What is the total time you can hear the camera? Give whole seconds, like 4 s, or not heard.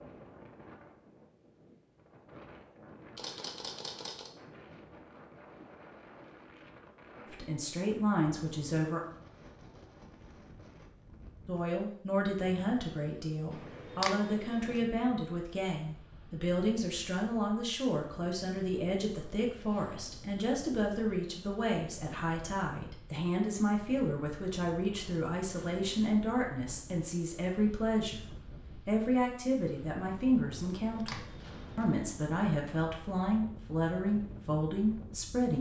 4 s.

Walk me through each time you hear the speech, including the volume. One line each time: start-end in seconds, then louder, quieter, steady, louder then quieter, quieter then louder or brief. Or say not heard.
7.3-9.0 brief
11.4-35.5 steady.